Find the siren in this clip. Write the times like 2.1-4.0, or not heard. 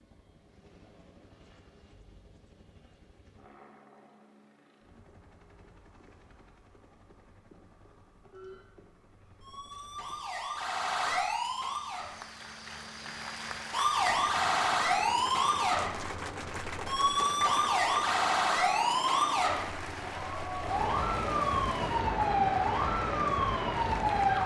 8.3-12.2, 13.7-24.4.